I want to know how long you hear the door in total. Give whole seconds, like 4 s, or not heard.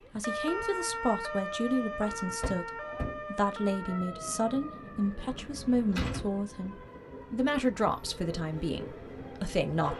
2 s.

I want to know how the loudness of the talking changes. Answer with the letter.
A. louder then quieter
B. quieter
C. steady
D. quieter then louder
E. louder
C.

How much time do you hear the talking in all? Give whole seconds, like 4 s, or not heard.
10 s.